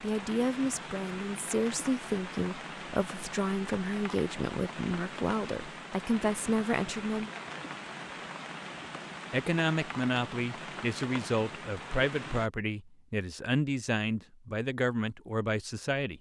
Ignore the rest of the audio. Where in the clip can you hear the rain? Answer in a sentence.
You can hear the rain from 0.0 to 12.5 s.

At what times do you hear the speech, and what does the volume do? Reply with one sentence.
The speech can be heard from 0.0 to 7.3 s, at a steady volume; and from 9.3 to 16.1 s, at a steady volume.